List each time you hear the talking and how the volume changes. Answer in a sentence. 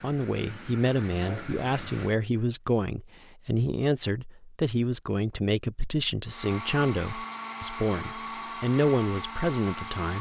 You can hear the talking from 0.0 to 10.1 s, at a steady volume.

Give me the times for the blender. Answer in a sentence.
The blender can be heard from 6.2 to 10.1 s.